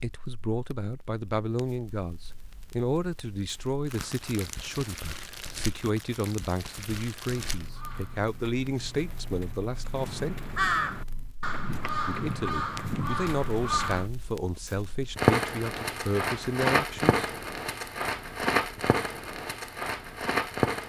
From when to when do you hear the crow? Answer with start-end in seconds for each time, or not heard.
7.5-14.1.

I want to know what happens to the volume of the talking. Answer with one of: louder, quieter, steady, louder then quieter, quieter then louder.
steady.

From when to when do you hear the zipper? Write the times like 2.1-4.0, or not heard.
not heard.